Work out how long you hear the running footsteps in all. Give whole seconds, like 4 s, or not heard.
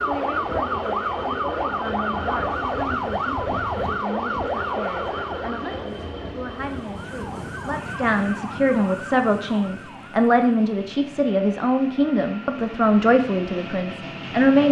not heard.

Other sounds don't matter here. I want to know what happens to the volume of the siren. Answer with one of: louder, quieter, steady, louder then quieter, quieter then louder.
quieter.